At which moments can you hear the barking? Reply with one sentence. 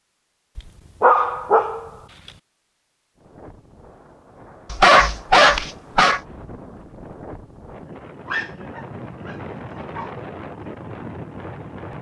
You can hear the barking from 0.6 to 1.9 s, from 4.7 to 6.2 s and from 8.2 to 10.2 s.